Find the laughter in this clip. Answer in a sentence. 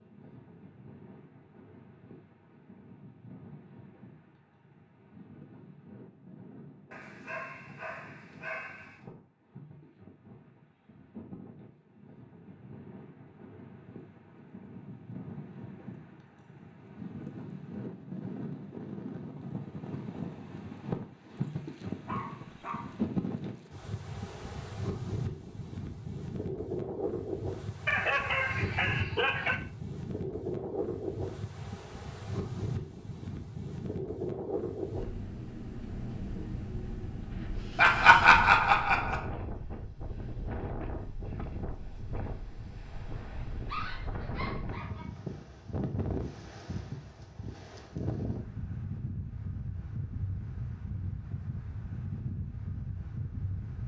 You can hear the laughter from 37.8 to 39.2 s.